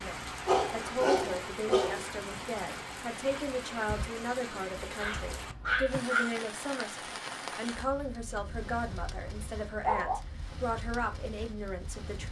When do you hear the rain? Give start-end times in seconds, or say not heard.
0.0-12.2.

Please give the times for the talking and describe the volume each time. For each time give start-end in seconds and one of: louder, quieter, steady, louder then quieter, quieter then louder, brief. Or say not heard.
0.0-12.2 steady.